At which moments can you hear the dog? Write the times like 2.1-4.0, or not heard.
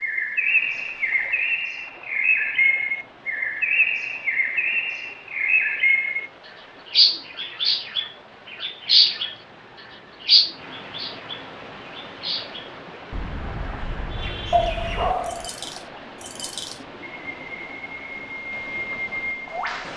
14.5-15.5.